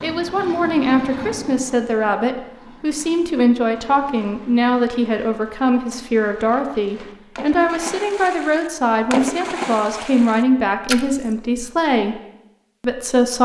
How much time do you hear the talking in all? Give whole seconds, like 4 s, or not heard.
13 s.